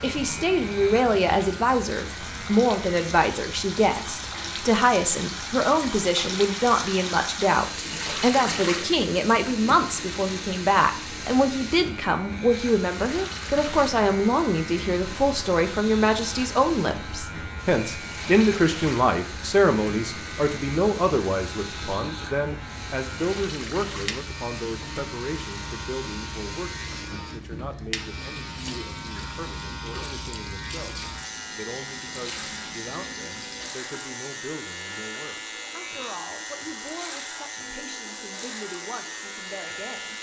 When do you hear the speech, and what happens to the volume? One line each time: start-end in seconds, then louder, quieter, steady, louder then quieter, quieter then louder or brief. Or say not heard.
0.0-40.1 quieter.